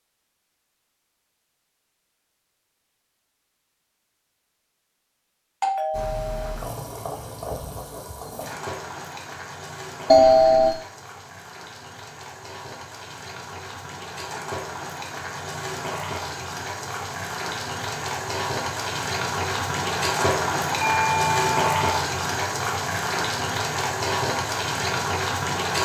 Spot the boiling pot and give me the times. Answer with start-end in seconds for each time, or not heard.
5.9-25.7.